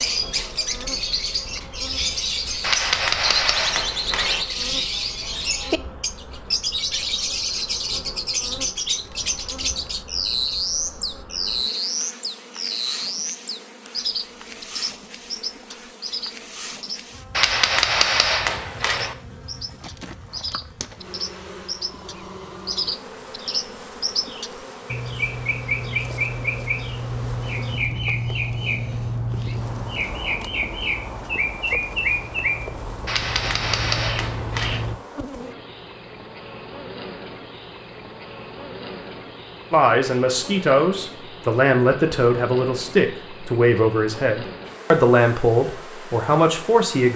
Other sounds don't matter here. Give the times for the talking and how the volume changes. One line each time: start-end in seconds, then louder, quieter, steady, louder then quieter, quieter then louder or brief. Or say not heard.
39.7-47.1 steady.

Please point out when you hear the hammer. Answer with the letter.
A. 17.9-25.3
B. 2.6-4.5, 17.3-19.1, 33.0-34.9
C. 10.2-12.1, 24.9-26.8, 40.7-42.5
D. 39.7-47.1
B.